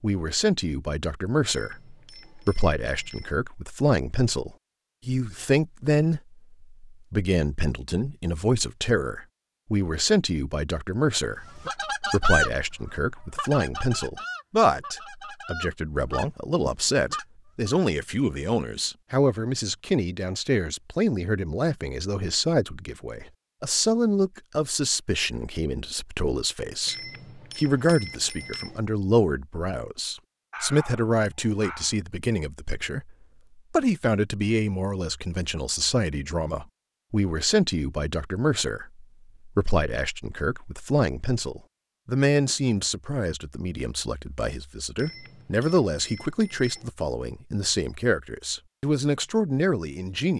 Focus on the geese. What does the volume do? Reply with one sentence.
The volume of the geese goes down, then up.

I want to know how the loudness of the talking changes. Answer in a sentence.
The loudness of the talking stays about the same.